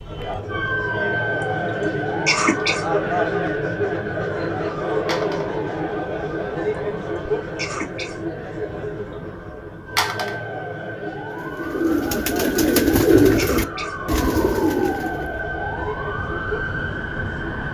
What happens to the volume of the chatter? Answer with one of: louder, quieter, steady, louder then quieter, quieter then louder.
quieter.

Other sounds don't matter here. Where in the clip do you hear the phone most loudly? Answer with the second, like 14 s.
10 s.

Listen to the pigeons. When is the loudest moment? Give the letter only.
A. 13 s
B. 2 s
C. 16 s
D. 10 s
A.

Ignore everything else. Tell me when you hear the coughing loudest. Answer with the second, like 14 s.
2 s.